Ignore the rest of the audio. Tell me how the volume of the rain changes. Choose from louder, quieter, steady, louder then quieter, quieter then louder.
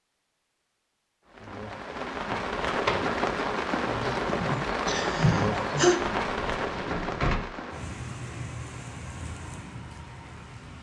quieter.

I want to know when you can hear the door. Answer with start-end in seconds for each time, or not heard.
2.3-3.1, 6.2-7.3.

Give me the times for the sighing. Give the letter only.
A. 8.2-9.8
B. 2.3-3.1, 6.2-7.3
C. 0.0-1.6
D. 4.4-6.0
D.